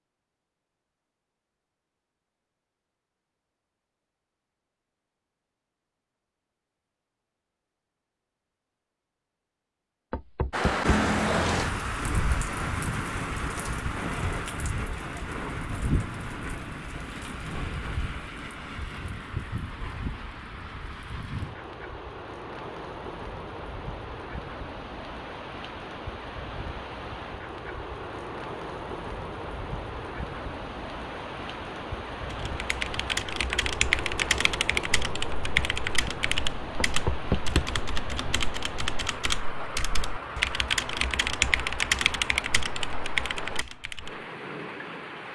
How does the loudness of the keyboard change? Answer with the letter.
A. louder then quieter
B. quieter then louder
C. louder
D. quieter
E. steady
B.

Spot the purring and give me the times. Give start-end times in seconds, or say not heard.
not heard.